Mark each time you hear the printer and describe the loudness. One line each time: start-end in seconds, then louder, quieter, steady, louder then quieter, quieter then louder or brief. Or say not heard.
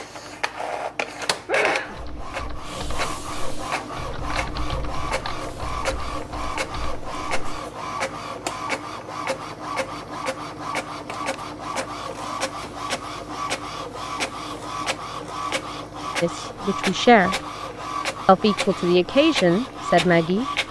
0.0-20.6 steady.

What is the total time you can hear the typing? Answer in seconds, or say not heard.
6 s.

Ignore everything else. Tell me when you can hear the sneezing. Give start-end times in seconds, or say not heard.
1.4-2.5.